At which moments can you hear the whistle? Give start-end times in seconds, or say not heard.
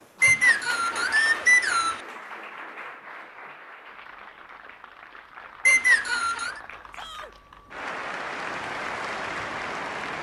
0.2-2.0, 5.7-6.6.